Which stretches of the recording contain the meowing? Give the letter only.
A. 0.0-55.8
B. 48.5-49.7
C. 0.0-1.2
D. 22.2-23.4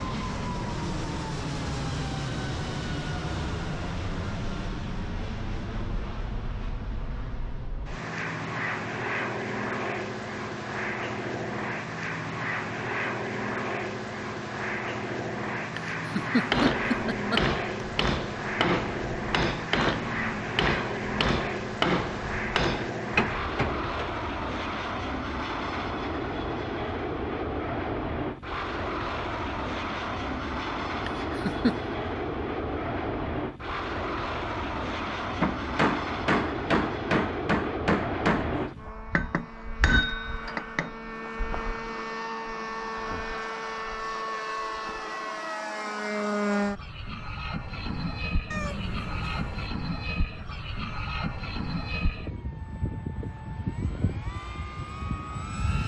B.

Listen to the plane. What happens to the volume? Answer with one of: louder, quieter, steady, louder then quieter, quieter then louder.
steady.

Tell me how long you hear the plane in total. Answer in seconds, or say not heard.
56 s.